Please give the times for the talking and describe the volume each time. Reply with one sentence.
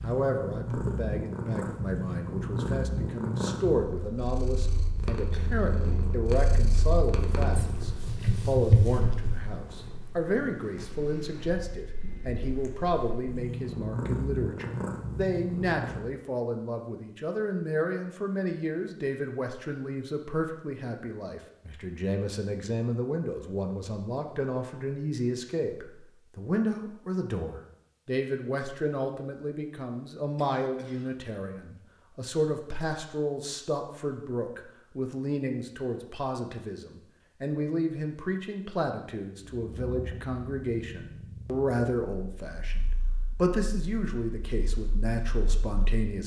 You can hear the talking from 0.0 to 46.2 s, at a steady volume.